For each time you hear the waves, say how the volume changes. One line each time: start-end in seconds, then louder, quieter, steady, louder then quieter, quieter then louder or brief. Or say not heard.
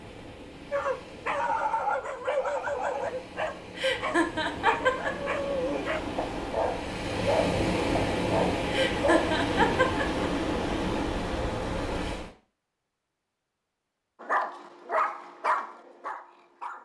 0.0-12.3 louder.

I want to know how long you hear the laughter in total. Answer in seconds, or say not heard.
3 s.